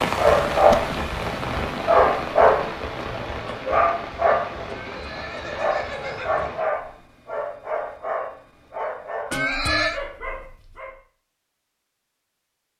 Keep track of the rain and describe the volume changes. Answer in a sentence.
The loudness of the rain goes down.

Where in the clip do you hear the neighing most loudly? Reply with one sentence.
The volume of the neighing peaks at 10 seconds.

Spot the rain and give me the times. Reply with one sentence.
You can hear the rain from 0.0 to 6.7 s.